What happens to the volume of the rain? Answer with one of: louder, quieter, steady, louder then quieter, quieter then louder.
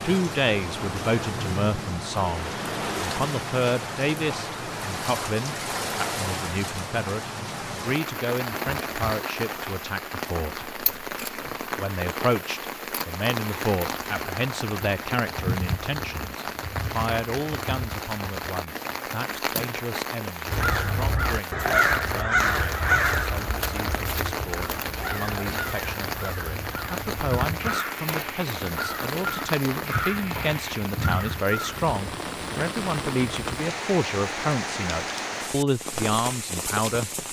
steady.